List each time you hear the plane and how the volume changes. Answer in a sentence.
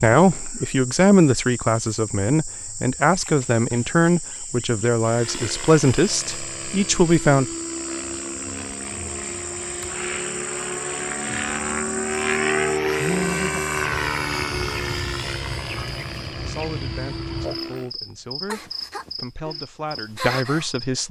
You can hear the plane from 5.0 to 17.9 s, getting louder then quieter.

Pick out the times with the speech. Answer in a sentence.
The speech can be heard from 0.0 to 7.5 s and from 16.4 to 21.0 s.